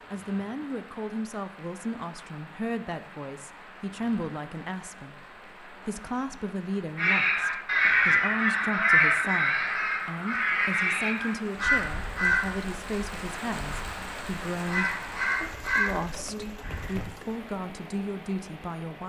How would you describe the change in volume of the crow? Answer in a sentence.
The loudness of the crow goes down.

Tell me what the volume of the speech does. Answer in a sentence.
The volume of the speech stays about the same.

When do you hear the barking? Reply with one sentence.
The barking can't be heard in this clip.